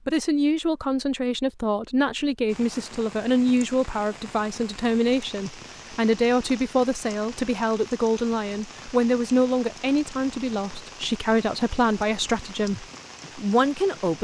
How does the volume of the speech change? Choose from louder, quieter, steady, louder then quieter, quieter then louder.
steady.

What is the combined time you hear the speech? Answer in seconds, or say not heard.
14 s.